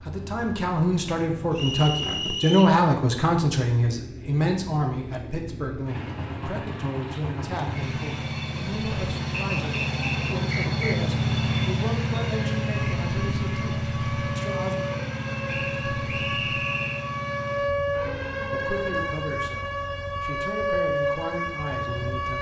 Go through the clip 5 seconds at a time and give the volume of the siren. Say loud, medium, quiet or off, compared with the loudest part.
off, off, medium, loud, loud.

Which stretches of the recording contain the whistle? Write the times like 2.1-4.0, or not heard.
1.5-2.8, 9.3-10.9, 15.4-17.1.